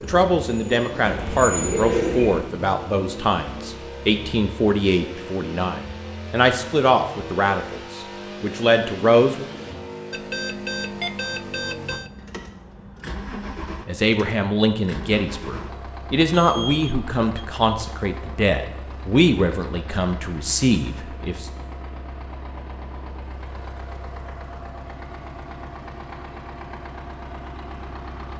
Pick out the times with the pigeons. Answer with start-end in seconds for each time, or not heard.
0.0-2.4.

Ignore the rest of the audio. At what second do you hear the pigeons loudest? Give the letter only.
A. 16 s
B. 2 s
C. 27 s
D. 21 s
B.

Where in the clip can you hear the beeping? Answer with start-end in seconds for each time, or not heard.
10.1-12.1, 16.3-17.4.